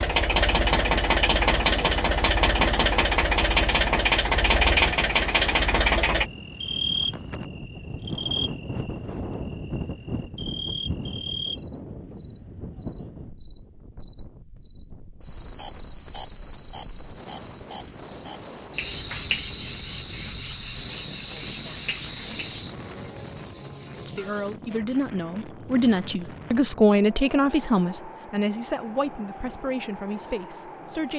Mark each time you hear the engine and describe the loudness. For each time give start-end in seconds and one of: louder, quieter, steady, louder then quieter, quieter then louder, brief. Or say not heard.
0.0-6.3 steady.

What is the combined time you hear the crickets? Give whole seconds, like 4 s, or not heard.
25 s.